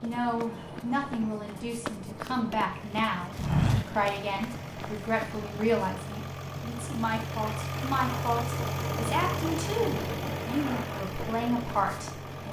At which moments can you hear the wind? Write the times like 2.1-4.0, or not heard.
0.0-12.4.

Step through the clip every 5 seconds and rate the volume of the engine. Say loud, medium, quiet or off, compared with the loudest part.
medium, loud, loud.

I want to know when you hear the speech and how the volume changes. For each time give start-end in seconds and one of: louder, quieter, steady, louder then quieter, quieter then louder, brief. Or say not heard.
0.0-12.4 steady.